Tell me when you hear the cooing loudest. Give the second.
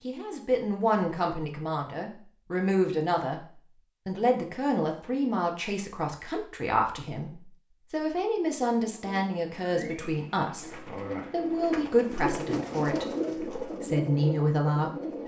13 s.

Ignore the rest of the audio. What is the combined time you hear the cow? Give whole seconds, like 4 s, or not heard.
not heard.